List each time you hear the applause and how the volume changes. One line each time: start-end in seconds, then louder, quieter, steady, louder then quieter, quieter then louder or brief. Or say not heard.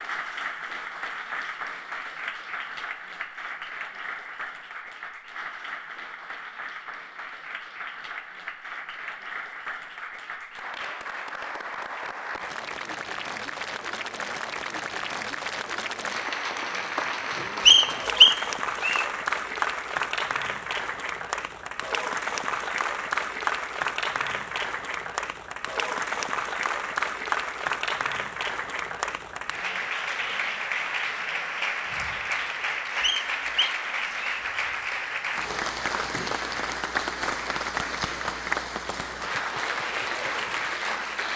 0.0-41.3 louder.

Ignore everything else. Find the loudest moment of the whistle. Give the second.
18 s.